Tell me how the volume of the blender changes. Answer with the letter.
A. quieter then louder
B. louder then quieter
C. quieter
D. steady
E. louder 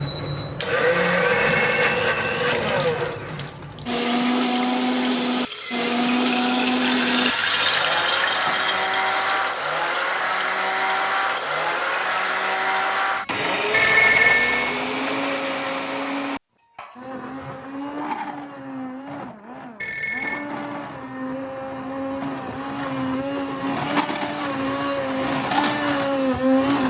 A.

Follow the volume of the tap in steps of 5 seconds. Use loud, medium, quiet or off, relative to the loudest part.
medium, loud, medium, off, off, off.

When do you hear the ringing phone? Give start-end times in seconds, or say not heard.
1.3-2.0, 13.7-14.8, 19.8-20.5.